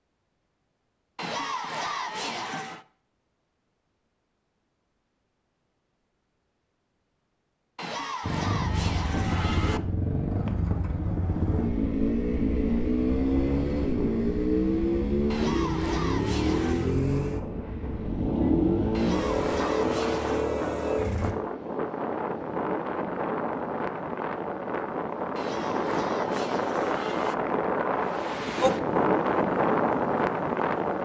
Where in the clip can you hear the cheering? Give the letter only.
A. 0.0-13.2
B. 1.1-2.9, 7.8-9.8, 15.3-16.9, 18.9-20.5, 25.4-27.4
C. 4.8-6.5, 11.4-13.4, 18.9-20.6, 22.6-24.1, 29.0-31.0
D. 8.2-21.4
B.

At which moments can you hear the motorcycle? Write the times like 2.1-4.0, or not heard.
8.2-21.4.